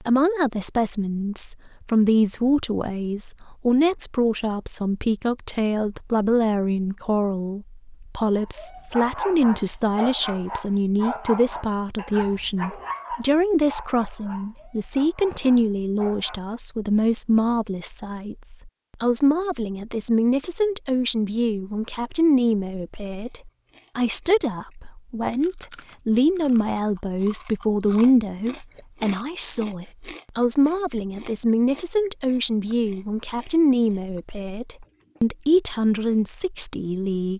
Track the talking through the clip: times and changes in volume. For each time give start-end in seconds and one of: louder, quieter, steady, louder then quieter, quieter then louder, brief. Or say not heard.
0.0-37.3 steady.